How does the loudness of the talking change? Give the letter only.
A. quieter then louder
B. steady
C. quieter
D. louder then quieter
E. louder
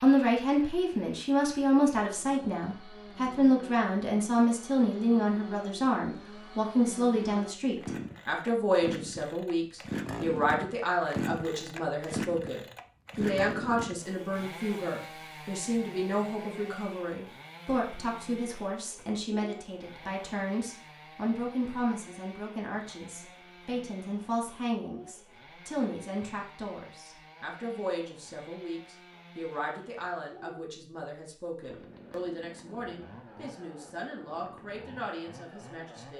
C.